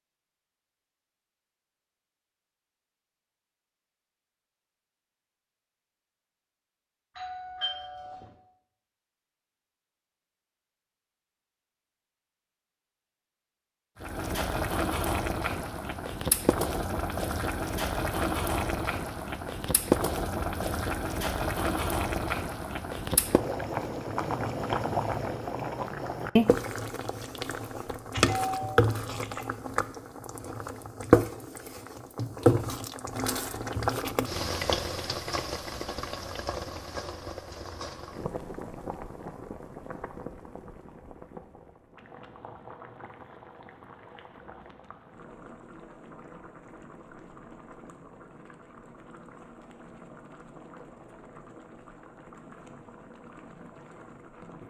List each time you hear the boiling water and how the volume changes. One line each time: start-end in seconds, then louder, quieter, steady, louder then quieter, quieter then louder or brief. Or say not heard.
14.0-54.6 quieter.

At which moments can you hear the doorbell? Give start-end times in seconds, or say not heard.
7.2-8.3, 27.4-29.4.